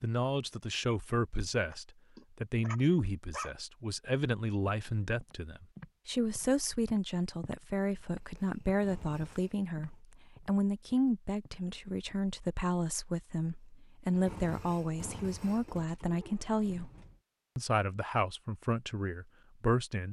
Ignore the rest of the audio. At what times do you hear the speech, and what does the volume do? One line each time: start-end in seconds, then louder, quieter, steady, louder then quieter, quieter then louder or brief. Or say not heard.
0.0-16.9 steady
17.6-20.0 brief.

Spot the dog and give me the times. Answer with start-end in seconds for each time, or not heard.
1.7-3.5.